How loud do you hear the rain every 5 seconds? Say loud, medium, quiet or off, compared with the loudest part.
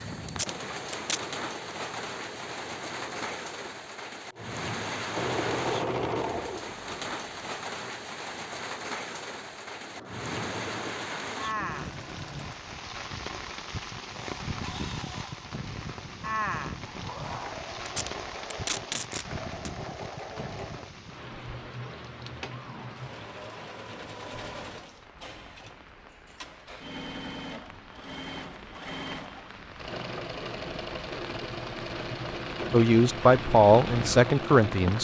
loud, loud, loud, loud, medium, quiet, loud.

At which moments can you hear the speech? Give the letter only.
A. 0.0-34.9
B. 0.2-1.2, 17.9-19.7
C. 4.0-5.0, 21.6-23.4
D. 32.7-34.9
D.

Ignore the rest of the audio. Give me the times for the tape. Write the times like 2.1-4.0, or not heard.
0.2-1.2, 17.9-19.7.